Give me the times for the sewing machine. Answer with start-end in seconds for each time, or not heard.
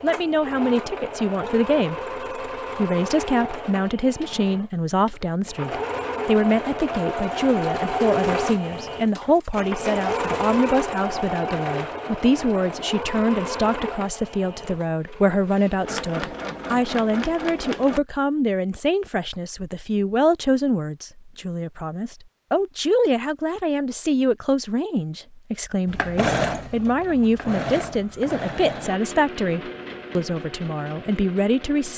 0.0-18.0, 25.9-31.9.